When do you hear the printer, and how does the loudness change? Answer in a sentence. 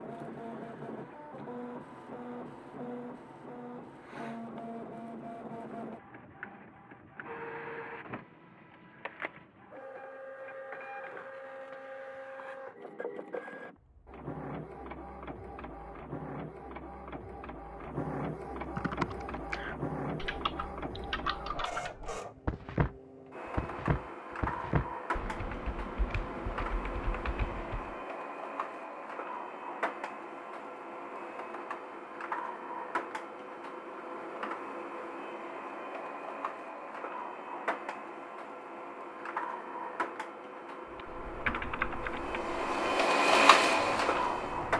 You can hear the printer from 0.0 to 44.7 s, getting louder.